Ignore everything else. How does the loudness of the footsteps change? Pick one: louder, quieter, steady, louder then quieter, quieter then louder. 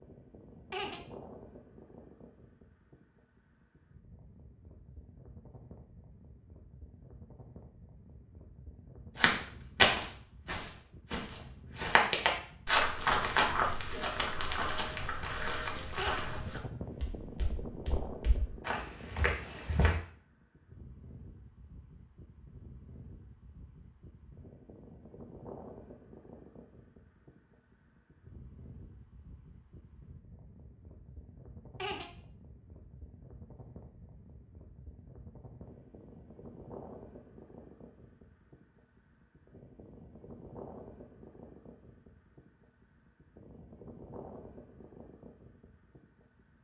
quieter.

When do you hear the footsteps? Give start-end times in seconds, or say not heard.
9.2-19.9.